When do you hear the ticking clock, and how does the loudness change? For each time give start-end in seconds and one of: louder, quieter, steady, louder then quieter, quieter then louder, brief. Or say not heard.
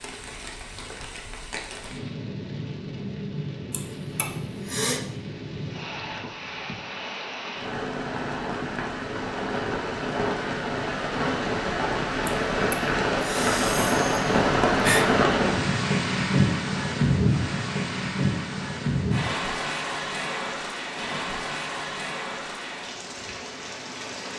not heard.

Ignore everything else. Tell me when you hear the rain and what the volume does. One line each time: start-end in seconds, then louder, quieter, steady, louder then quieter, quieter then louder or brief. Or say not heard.
0.0-24.3 louder then quieter.